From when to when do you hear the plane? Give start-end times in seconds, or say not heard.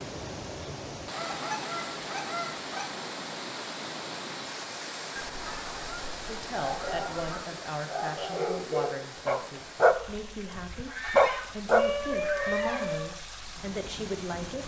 not heard.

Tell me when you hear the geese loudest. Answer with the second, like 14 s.
12 s.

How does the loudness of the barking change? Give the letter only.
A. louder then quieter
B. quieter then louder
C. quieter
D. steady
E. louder
E.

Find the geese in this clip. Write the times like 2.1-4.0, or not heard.
1.1-3.0, 5.2-7.5, 10.7-13.1.